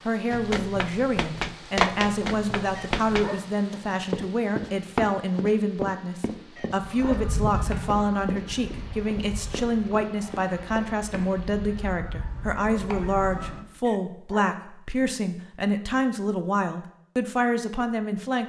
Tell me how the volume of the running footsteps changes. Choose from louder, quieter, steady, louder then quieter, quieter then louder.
quieter.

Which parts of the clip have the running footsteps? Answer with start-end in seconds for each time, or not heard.
0.3-11.2.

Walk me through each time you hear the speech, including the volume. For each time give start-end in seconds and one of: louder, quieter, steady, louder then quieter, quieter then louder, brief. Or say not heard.
0.1-18.4 steady.